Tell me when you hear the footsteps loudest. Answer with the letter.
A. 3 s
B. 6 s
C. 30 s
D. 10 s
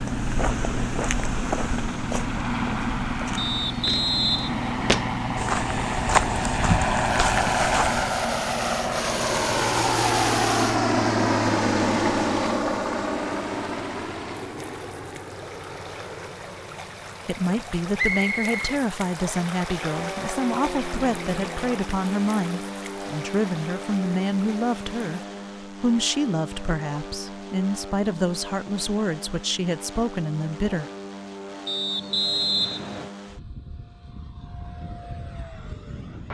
B.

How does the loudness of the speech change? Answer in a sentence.
The loudness of the speech stays about the same.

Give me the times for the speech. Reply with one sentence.
The speech can be heard from 17.2 to 30.9 s.